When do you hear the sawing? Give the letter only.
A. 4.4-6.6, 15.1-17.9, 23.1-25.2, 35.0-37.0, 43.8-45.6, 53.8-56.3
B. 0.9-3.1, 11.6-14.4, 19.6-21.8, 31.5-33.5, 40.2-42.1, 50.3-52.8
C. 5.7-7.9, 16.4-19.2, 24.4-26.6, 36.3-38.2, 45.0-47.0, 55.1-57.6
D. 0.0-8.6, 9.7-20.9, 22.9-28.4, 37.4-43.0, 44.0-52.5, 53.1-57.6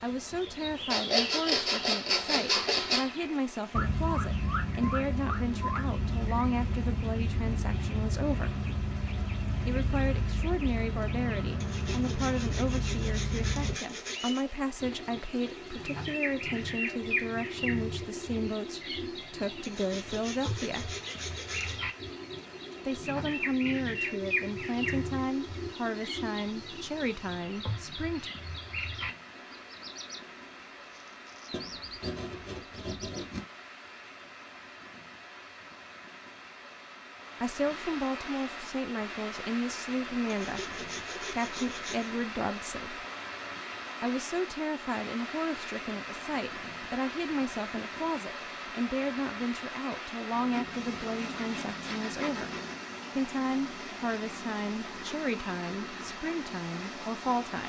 B.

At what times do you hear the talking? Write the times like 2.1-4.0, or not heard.
0.0-8.6, 9.7-20.9, 22.9-28.4, 37.4-43.0, 44.0-52.5, 53.1-57.6.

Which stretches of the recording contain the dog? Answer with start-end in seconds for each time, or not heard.
not heard.